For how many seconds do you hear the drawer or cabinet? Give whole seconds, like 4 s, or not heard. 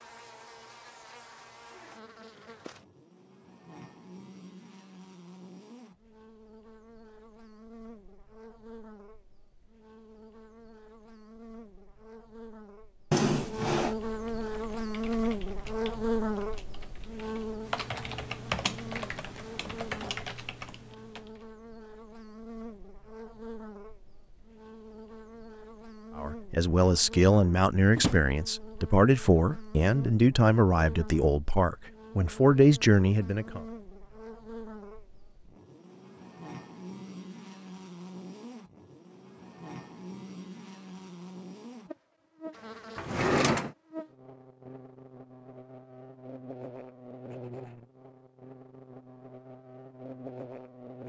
2 s.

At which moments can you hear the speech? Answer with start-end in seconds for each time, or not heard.
26.1-33.6.